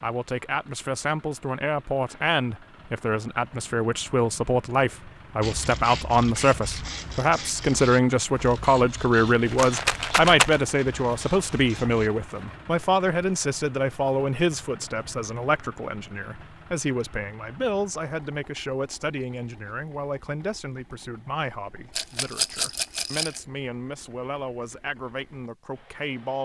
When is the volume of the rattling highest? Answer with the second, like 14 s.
10 s.